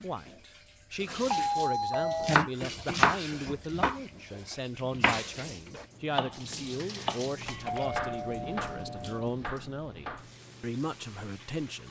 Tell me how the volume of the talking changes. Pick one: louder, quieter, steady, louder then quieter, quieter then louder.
steady.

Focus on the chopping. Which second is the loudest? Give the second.
3 s.